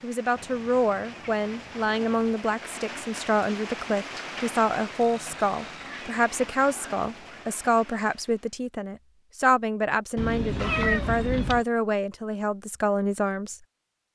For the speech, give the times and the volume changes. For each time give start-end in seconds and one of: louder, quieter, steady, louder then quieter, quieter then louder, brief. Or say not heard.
0.0-13.6 steady.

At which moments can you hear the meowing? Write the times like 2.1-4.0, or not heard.
0.3-2.4, 5.0-7.5, 10.2-11.7.